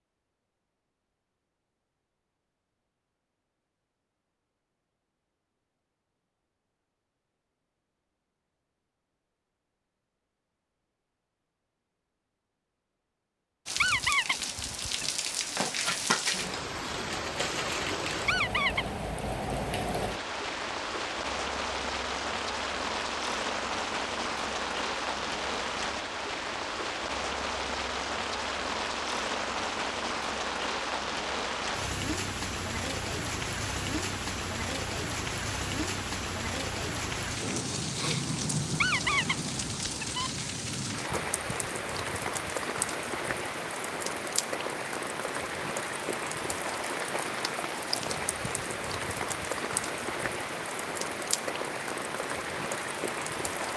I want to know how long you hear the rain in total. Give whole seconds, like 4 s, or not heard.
40 s.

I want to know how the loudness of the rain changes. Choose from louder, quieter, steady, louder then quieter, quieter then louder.
steady.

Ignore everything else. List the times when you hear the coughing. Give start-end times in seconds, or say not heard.
not heard.